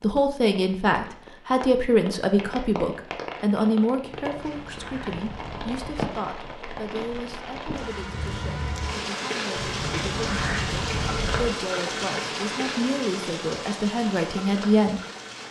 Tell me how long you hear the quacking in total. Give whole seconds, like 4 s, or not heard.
4 s.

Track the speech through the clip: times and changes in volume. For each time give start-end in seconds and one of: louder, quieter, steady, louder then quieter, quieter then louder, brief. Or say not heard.
0.0-15.0 quieter then louder.